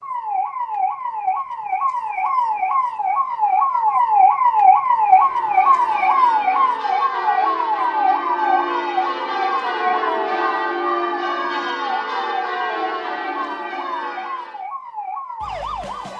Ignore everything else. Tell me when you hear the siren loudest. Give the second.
5 s.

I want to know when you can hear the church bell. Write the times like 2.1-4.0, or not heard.
5.0-14.7.